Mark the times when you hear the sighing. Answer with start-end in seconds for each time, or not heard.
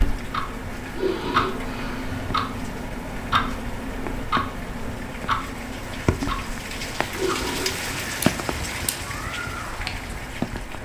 0.9-2.4, 7.1-7.8.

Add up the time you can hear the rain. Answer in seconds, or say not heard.
11 s.